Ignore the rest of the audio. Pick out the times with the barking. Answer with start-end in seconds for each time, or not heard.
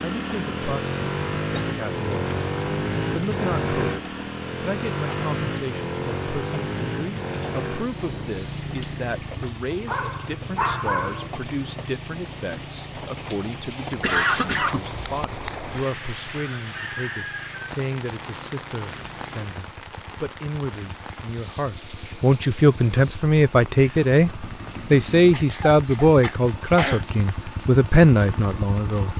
9.8-11.3.